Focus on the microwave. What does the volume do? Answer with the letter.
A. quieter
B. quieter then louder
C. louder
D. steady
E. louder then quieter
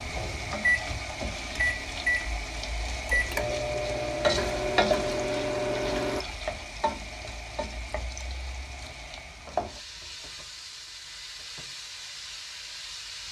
D.